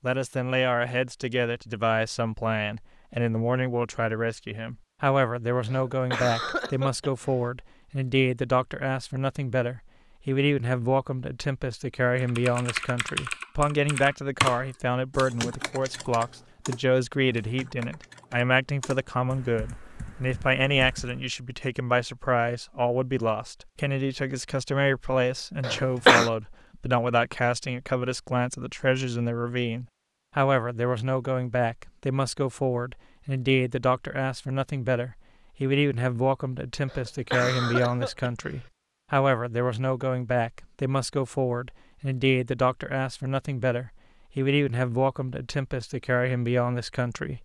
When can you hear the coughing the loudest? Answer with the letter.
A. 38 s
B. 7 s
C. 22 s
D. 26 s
D.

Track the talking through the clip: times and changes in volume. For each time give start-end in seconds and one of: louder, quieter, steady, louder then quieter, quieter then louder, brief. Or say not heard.
0.0-47.4 steady.